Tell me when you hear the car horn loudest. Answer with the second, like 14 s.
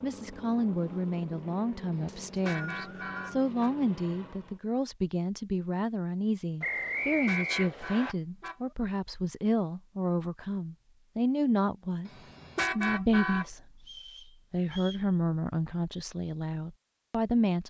13 s.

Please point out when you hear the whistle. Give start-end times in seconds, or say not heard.
2.0-3.4, 6.6-8.2, 13.8-15.1.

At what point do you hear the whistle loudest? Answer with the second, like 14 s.
7 s.